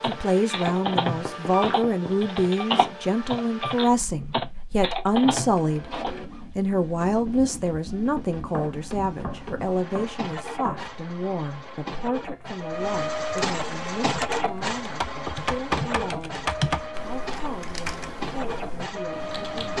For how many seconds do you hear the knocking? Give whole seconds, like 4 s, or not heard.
6 s.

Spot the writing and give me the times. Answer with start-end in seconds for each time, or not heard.
not heard.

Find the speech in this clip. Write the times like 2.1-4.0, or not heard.
0.0-19.7.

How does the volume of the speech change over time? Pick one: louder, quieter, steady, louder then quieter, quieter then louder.
quieter.